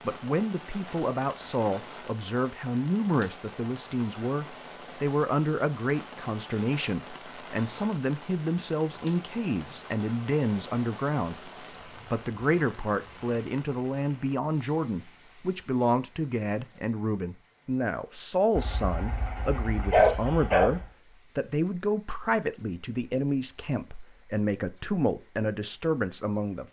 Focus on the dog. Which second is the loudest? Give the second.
20 s.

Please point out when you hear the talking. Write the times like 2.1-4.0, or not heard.
0.0-26.6.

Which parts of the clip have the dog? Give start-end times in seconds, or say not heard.
18.6-20.9.